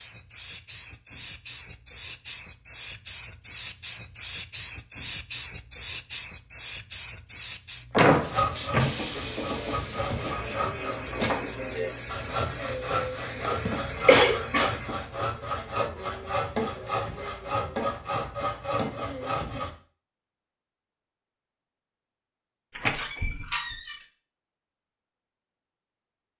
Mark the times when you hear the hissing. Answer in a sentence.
The hissing can be heard from 0.0 to 15.1 s.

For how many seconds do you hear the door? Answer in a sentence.
You can hear the door for 2 seconds altogether.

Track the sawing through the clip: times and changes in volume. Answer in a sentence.
The sawing can be heard from 8.1 to 19.7 s, at a steady volume.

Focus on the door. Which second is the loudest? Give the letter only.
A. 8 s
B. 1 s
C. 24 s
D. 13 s
A.